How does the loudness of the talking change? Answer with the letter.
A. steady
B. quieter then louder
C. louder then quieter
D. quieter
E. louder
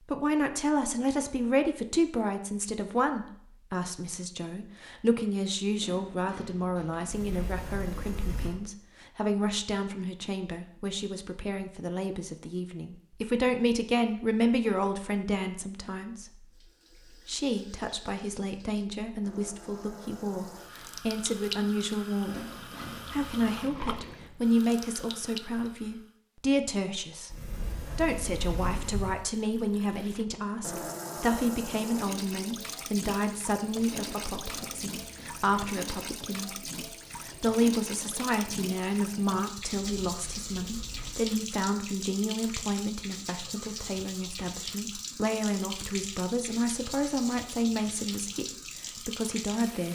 A.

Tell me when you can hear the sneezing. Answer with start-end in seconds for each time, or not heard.
not heard.